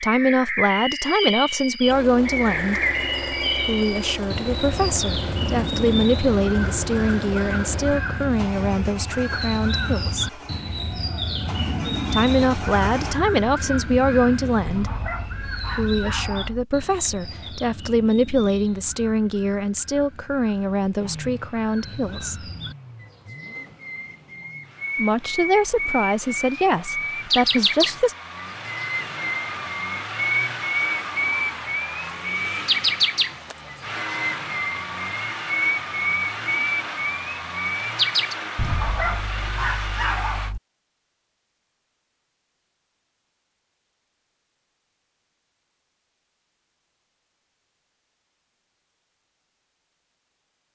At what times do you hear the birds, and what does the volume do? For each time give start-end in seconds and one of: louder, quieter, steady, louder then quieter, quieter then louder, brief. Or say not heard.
0.0-38.4 quieter then louder.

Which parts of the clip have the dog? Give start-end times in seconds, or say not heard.
14.7-16.6, 38.5-40.6.